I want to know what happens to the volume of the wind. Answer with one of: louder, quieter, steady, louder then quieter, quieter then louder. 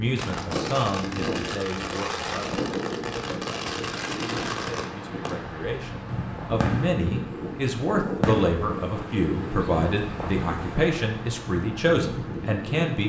steady.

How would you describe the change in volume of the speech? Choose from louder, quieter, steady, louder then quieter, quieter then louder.
quieter then louder.